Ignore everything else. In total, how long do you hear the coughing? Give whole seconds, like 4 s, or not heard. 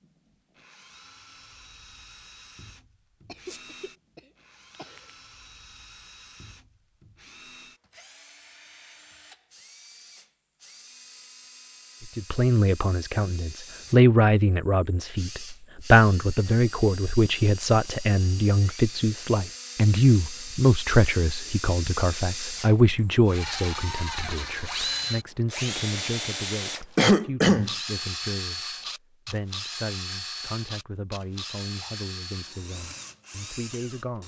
3 s.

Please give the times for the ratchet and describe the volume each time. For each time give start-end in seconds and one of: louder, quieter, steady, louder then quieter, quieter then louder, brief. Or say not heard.
not heard.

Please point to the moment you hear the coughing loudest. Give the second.
27 s.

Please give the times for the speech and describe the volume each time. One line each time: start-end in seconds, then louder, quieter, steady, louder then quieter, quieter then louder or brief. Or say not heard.
12.2-34.2 quieter.